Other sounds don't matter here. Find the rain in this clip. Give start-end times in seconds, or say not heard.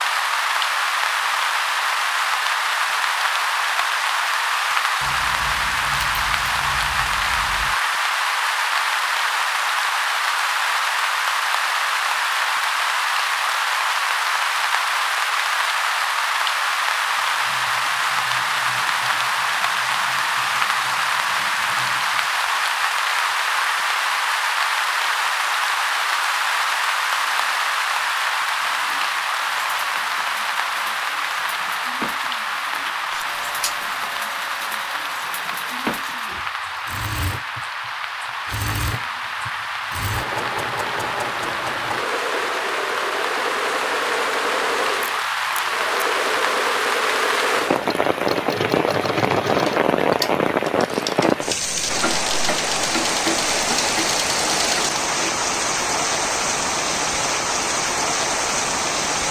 0.0-59.2.